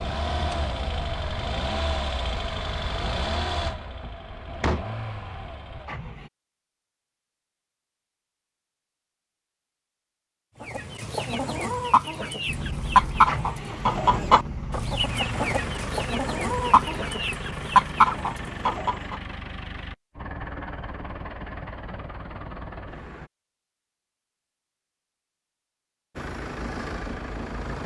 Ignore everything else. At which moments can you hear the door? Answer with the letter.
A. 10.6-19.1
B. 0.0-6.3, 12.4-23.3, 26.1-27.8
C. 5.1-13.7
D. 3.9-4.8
D.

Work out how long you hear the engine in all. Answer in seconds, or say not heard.
19 s.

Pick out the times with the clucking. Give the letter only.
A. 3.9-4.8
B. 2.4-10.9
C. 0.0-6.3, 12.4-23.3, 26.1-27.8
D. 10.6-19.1
D.